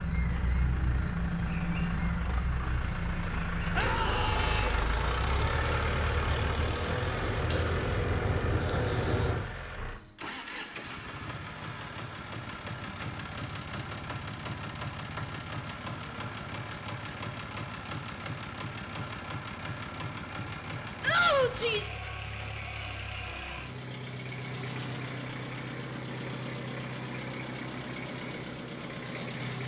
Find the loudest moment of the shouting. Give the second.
21 s.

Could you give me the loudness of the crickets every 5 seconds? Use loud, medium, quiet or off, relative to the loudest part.
medium, medium, loud, loud, loud, loud.